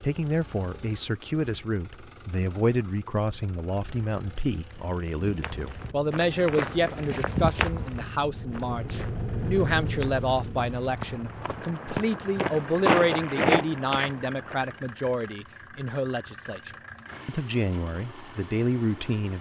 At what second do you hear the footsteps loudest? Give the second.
13 s.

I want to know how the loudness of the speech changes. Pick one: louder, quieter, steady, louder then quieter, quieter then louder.
steady.